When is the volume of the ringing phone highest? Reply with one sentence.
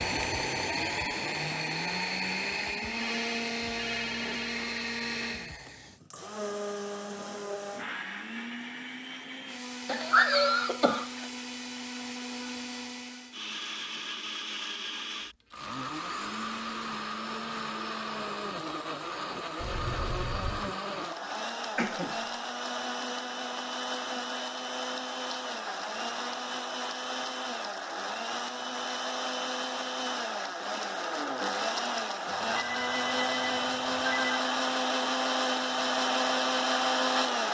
The loudest moment of the ringing phone is at 34 seconds.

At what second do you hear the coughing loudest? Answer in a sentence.
The volume of the coughing peaks at 10 seconds.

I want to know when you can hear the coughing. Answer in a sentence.
The coughing can be heard from 9.8 to 11.2 s and from 21.8 to 22.2 s.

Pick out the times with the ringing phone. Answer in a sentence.
You can hear the ringing phone from 3.0 to 4.8 s, from 19.6 to 20.8 s and from 32.2 to 34.4 s.